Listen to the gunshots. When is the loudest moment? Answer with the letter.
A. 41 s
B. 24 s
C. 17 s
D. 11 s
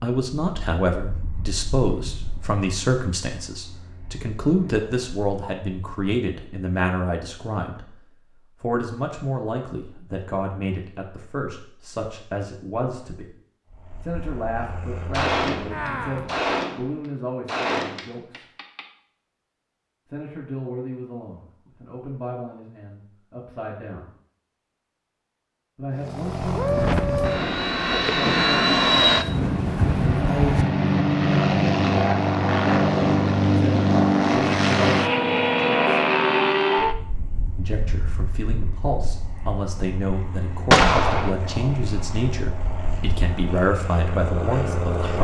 A.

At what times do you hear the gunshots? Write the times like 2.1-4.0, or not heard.
15.1-18.9, 40.7-41.3.